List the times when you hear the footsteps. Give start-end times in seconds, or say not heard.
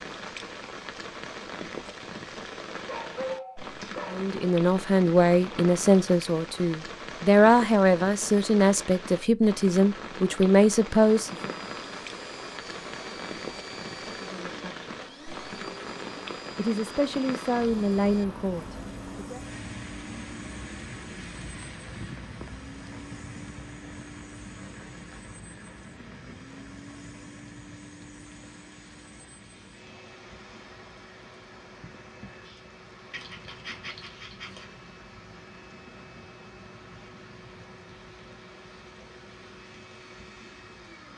not heard.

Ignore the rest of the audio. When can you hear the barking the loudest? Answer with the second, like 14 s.
3 s.